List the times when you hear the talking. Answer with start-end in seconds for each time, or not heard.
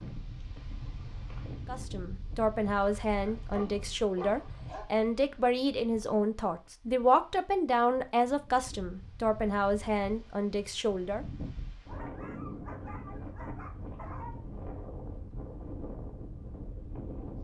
1.6-11.2.